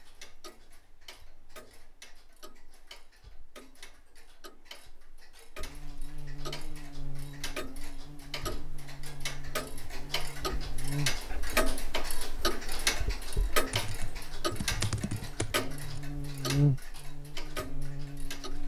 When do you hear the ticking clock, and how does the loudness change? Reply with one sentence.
You can hear the ticking clock from 0.0 to 18.6 s, getting louder then quieter.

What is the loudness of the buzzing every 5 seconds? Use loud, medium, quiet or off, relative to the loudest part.
off, quiet, medium, loud.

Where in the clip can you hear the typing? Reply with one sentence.
The typing can be heard from 13.7 to 16.0 s.